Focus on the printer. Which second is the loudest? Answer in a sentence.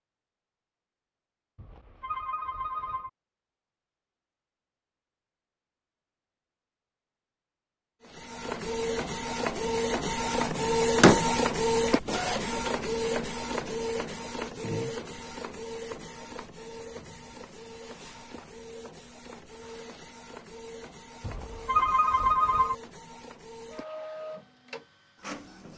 The loudest moment of the printer is at 11 seconds.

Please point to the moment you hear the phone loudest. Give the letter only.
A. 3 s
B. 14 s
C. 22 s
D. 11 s
C.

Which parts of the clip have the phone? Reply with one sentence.
You can hear the phone from 1.6 to 3.1 s and from 21.2 to 22.8 s.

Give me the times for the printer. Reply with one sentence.
The printer can be heard from 8.0 to 25.7 s.